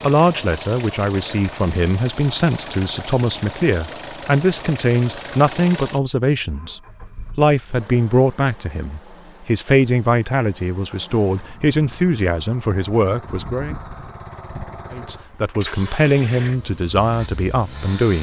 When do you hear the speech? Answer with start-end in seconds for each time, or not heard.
0.0-13.8, 14.9-18.1.